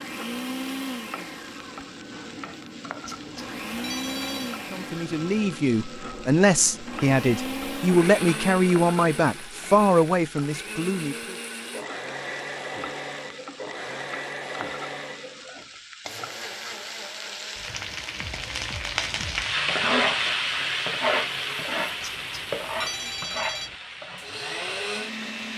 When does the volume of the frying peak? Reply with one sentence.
The loudest moment of the frying is at 20 seconds.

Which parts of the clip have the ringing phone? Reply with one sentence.
You can hear the ringing phone from 3.0 to 4.6 s and from 22.0 to 23.8 s.